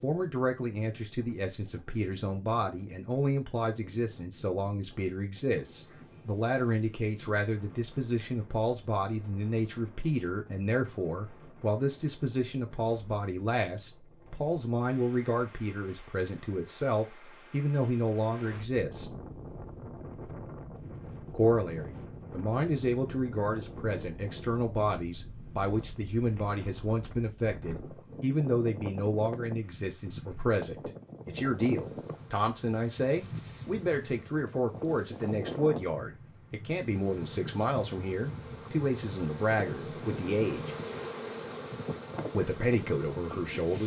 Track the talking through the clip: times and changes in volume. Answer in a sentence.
The talking can be heard from 0.0 to 19.1 s, at a steady volume; from 21.3 to 40.8 s, at a steady volume; and briefly from 42.3 to 43.8 s.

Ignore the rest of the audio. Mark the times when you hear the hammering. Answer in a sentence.
The hammering can't be heard in this clip.